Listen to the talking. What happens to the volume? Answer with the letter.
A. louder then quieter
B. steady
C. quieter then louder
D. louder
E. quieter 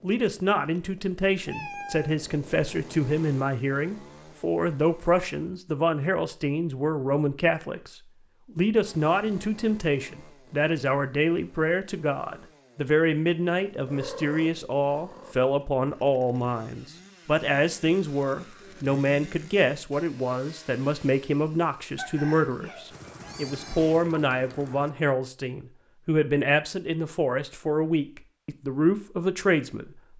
B.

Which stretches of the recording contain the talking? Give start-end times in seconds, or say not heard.
0.0-30.1.